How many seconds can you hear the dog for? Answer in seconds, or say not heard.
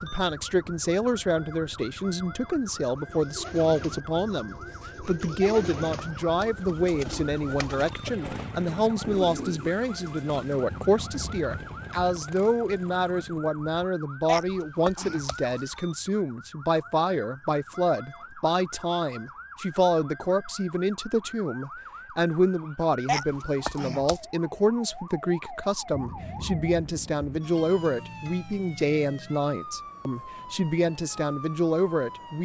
not heard.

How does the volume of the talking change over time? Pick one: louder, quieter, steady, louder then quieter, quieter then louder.
steady.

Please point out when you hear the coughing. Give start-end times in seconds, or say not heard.
5.4-6.5, 14.2-15.6, 23.1-24.2.